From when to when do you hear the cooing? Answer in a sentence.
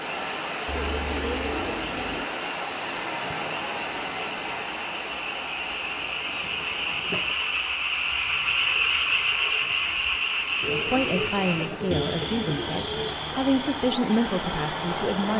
You can hear the cooing from 0.7 to 2.3 s, from 5.8 to 7.3 s and from 10.6 to 13.2 s.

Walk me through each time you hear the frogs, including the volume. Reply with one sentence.
You can hear the frogs from 0.0 to 15.3 s, getting louder then quieter.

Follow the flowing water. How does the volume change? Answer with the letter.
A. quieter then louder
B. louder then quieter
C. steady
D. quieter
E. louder
A.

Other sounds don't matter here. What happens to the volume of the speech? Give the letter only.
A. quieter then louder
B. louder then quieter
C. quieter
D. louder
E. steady
A.